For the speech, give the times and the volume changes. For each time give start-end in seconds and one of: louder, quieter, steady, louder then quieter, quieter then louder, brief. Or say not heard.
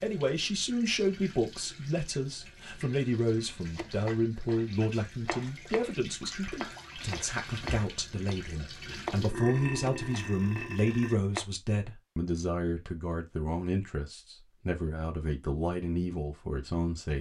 0.0-17.1 steady.